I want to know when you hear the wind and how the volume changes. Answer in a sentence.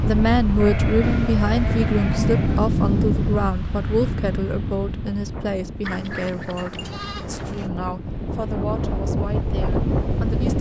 You can hear the wind from 0.0 to 10.5 s, getting quieter then louder.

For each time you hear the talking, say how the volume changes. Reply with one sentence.
The talking can be heard from 0.0 to 10.5 s, getting quieter.